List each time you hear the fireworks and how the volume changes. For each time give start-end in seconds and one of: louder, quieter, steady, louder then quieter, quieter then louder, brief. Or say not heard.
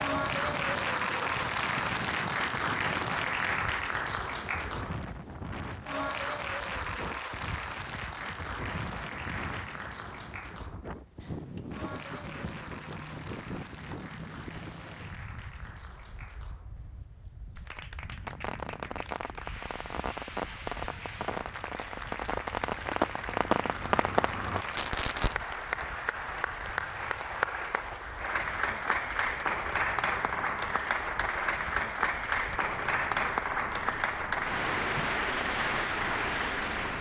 18.2-25.4 louder.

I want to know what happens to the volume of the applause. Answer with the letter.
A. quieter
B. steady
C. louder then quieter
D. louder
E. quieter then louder
E.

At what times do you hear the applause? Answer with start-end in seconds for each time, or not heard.
0.0-36.9.